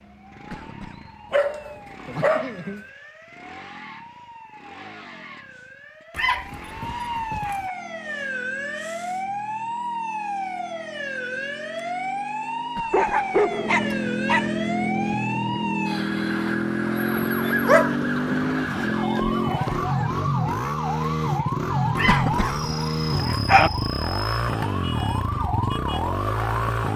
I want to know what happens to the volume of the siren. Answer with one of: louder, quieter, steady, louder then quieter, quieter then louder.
louder.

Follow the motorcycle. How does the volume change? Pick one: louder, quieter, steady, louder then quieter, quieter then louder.
louder.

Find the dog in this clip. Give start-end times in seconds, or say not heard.
1.3-2.9, 6.2-7.7, 12.9-14.5, 17.6-19.8, 21.9-23.7.